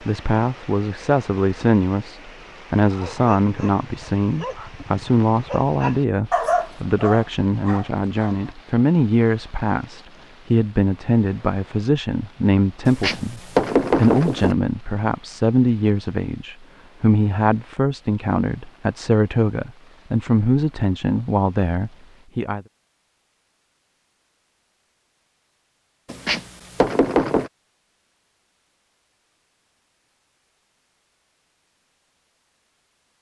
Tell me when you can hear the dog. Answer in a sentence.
The dog can be heard from 2.8 to 8.6 s.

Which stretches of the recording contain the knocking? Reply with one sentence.
The knocking can be heard from 12.8 to 14.6 s and from 26.1 to 27.5 s.